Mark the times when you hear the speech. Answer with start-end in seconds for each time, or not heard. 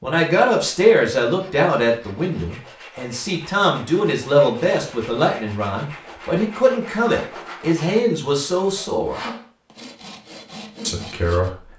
0.0-9.2, 10.8-11.6.